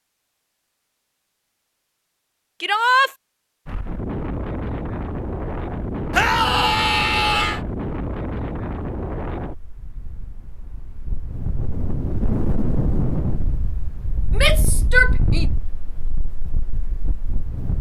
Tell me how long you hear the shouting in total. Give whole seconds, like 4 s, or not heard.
3 s.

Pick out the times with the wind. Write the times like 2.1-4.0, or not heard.
3.6-17.7.